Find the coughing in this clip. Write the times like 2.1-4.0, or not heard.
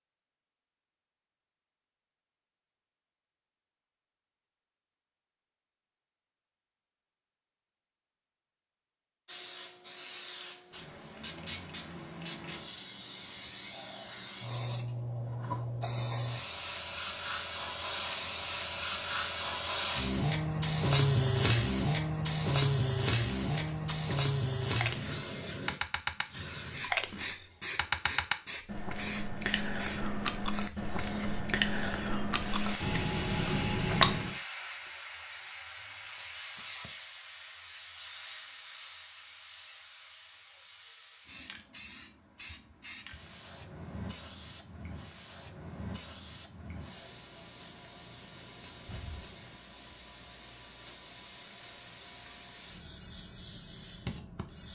not heard.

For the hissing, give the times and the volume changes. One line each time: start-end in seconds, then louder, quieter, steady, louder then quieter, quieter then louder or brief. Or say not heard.
9.2-54.7 louder then quieter.